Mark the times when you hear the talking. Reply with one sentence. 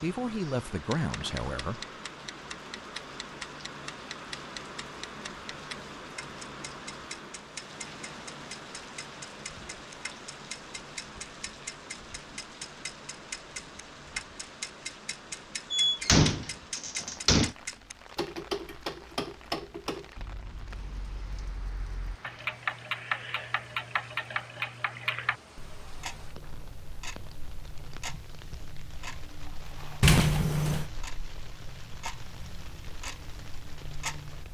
You can hear the talking from 0.0 to 1.8 s.